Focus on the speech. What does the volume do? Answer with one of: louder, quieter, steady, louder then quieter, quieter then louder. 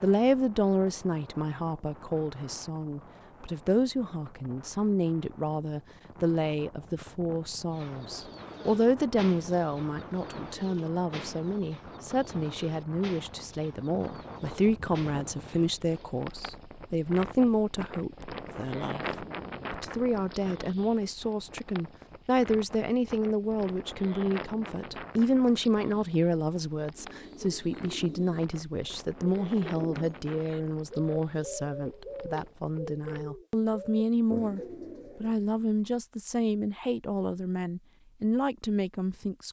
steady.